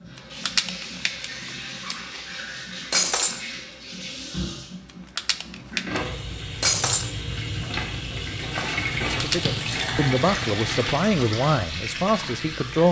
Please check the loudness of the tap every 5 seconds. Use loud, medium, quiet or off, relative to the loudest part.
medium, loud, loud.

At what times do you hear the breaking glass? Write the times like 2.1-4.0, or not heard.
2.9-3.4, 6.6-7.0.